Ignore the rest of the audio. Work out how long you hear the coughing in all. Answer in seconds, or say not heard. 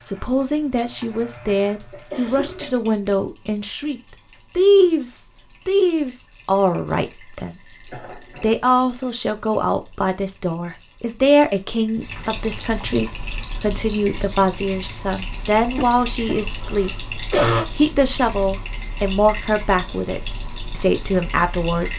4 s.